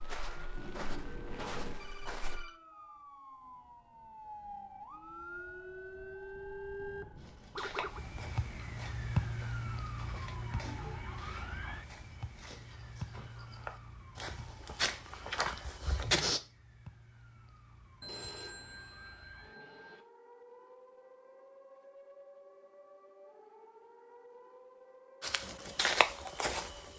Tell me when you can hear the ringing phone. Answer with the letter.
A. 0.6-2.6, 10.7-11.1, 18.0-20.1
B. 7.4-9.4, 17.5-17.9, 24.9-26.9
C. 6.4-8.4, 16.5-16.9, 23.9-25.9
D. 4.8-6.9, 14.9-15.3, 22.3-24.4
A.